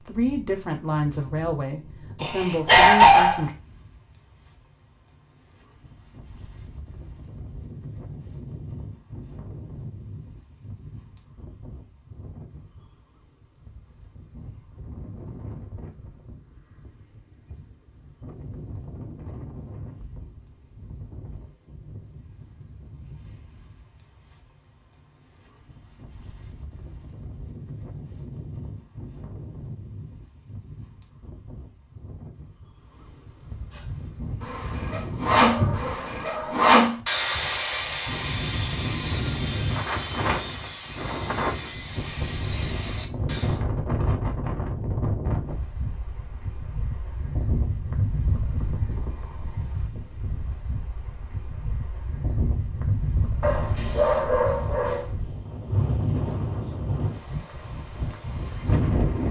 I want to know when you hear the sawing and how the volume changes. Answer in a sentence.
You can hear the sawing from 33.7 to 43.6 s, getting quieter.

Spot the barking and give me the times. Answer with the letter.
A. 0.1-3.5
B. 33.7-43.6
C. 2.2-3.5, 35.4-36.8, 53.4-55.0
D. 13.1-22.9
C.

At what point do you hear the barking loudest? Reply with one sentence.
The loudest moment of the barking is at 3 seconds.